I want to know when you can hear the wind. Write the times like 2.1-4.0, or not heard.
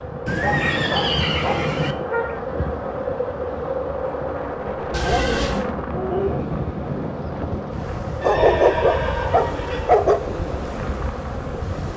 0.0-11.9.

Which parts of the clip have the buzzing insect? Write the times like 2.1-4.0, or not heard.
0.0-11.9.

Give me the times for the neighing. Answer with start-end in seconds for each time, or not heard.
0.2-1.9, 4.9-5.7, 8.2-9.9.